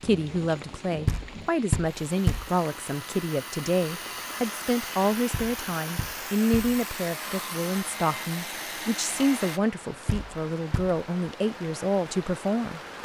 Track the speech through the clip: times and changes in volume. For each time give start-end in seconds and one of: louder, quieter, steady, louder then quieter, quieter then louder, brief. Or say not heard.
0.0-13.0 steady.